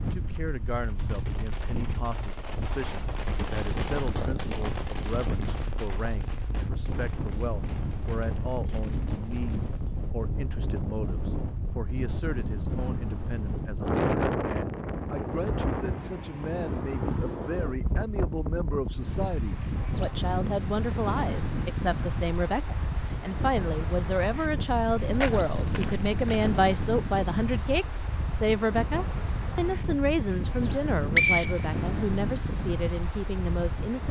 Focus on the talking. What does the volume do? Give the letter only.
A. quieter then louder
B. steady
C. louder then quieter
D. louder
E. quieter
D.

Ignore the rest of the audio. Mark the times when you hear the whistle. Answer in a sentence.
The whistle can be heard from 30.6 to 32.1 s.